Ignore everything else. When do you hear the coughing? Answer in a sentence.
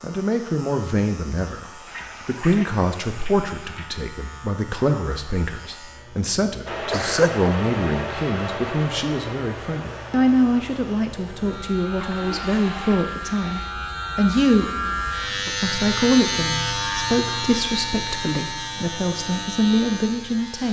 You can hear the coughing from 6.8 to 7.5 s.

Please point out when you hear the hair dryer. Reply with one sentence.
The hair dryer can be heard from 6.7 to 13.0 s.